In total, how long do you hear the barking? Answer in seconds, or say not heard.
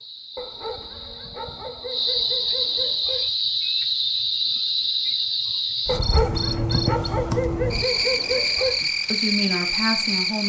6 s.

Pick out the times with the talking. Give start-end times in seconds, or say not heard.
8.8-10.4.